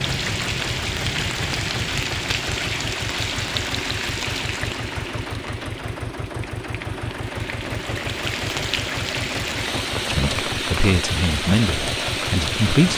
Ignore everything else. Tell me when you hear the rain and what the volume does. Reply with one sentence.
The rain can be heard from 0.0 to 12.9 s, getting quieter then louder.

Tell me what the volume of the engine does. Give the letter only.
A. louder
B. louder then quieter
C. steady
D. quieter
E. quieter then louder
C.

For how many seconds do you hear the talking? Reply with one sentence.
The talking can be heard for 3 seconds in total.